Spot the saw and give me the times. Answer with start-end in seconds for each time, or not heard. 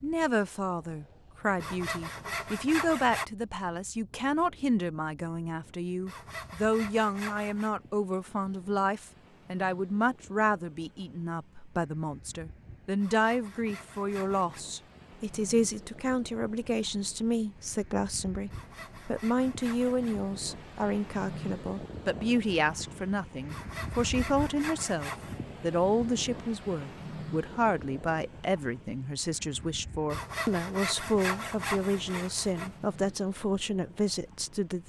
1.6-3.2, 6.0-7.7, 13.0-14.7, 18.5-20.2, 23.4-25.4, 30.1-32.8.